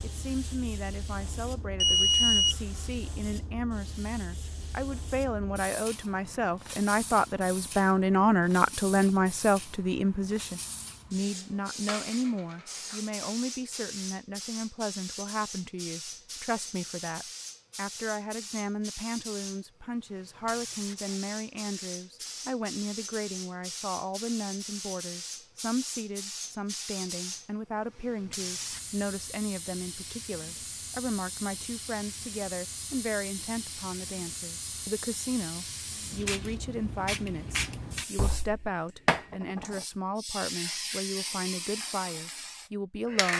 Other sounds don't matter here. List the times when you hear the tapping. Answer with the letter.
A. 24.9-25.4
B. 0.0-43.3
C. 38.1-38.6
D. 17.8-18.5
C.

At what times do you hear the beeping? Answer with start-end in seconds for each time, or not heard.
1.8-2.5.